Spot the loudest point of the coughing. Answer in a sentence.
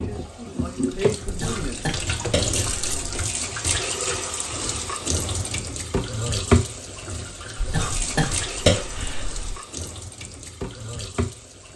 The volume of the coughing peaks at 9 seconds.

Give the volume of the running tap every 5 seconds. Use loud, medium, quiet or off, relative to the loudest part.
loud, loud, medium.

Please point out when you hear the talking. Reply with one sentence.
The talking can be heard from 0.0 to 1.8 s.